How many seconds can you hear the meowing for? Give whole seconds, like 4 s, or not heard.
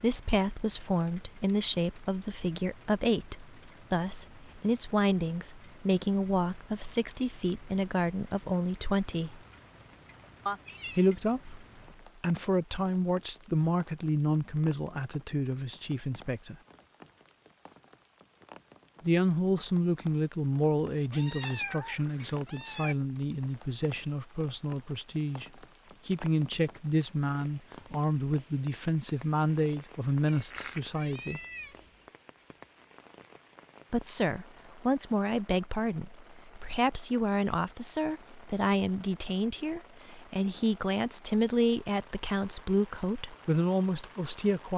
4 s.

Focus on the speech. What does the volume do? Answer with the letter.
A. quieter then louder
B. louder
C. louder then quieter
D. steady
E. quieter
D.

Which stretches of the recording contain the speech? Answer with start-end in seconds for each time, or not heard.
0.0-9.4, 10.9-16.6, 19.0-25.4, 26.1-31.4, 33.9-44.7.